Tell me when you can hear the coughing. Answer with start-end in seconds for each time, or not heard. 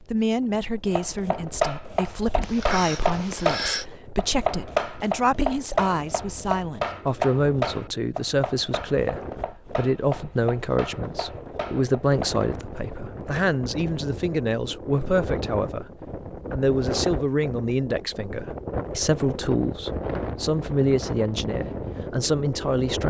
2.4-3.9.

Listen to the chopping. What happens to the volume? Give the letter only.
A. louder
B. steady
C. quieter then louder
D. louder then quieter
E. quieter
E.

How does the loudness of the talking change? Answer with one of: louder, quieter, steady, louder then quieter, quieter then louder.
steady.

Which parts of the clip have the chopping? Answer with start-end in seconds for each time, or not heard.
0.8-12.4.